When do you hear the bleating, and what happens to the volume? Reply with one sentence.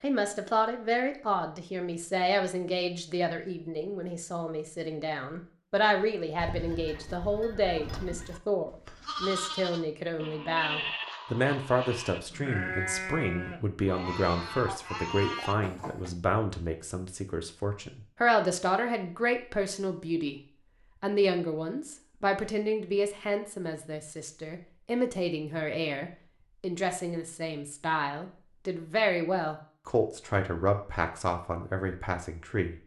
You can hear the bleating from 6.0 to 16.1 s, getting louder.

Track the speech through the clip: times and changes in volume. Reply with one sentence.
The speech can be heard from 0.0 to 32.8 s, at a steady volume.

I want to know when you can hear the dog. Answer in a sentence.
You can't hear the dog here.